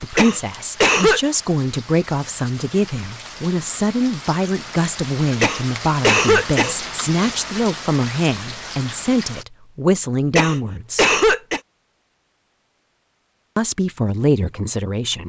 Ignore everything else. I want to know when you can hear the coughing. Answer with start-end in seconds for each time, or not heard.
0.1-1.2, 5.4-7.3, 10.3-11.6.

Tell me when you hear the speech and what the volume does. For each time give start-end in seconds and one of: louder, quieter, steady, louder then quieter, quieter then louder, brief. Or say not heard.
0.0-11.1 steady
13.6-15.2 brief.